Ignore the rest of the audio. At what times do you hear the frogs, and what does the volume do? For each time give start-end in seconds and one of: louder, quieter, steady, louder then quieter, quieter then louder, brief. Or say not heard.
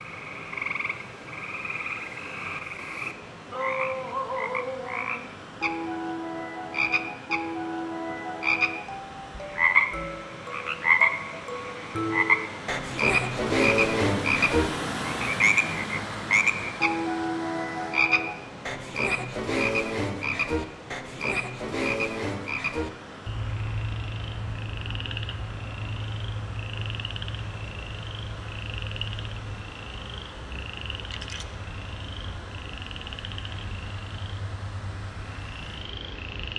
0.0-36.5 louder then quieter.